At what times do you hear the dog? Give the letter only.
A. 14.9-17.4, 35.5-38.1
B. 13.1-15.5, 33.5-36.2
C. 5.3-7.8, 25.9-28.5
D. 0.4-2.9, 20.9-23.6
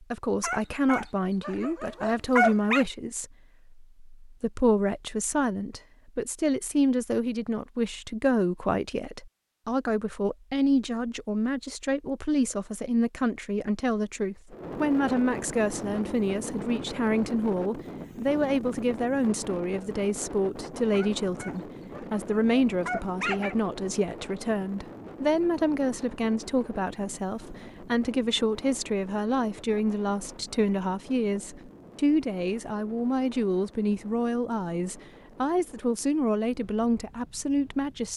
D.